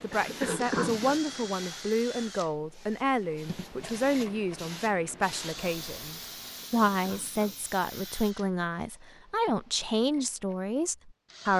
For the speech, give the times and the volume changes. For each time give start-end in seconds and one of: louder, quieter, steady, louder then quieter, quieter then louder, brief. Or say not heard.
0.0-11.5 steady.